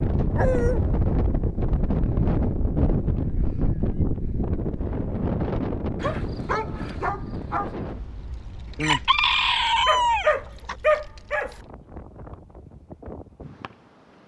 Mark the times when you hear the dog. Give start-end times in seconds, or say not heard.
0.3-0.8, 6.0-7.8, 9.8-11.6.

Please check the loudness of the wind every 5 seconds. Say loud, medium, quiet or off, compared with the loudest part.
loud, medium, quiet.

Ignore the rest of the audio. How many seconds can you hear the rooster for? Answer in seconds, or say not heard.
2 s.